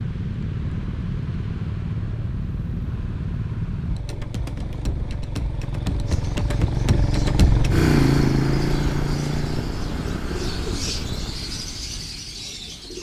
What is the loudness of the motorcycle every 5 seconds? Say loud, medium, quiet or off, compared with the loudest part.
medium, loud, medium.